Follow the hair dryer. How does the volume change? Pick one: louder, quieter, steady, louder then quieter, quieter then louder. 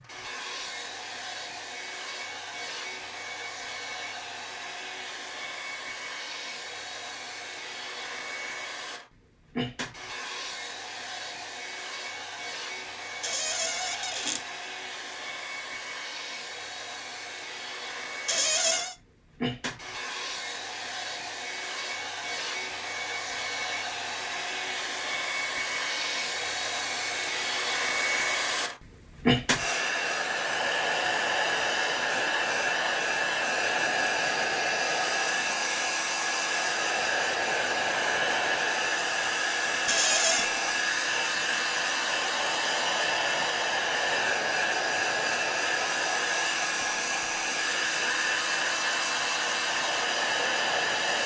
louder.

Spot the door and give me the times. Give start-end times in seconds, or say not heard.
13.2-14.4, 18.2-18.9, 39.9-40.5.